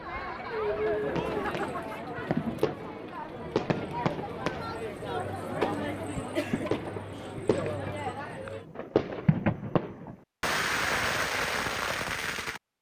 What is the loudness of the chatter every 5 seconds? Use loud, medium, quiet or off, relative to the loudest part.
loud, loud, off.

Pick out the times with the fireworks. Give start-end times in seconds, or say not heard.
0.8-12.6.